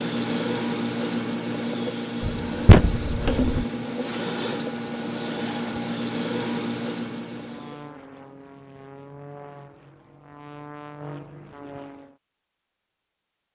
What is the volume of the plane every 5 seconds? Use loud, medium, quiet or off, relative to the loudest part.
off, loud, loud.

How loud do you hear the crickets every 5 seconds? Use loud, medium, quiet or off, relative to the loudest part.
loud, loud, off.